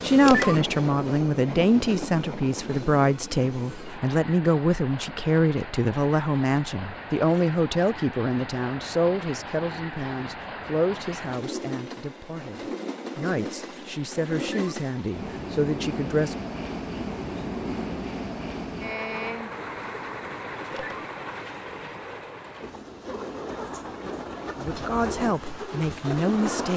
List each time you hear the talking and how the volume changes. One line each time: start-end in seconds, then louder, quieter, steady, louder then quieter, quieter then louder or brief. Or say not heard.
0.0-16.4 quieter
24.6-26.7 brief.